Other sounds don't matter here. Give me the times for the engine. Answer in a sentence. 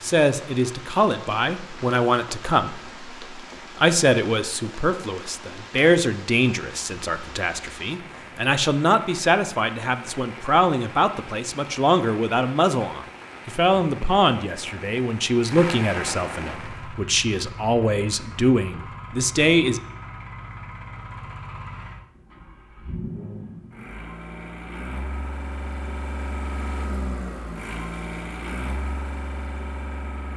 You can hear the engine from 16.5 to 30.3 s.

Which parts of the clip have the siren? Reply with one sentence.
You can't hear the siren here.